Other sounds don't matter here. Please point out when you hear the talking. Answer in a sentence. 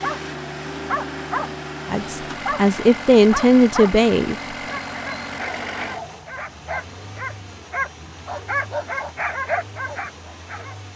The talking can be heard from 1.9 to 4.3 s.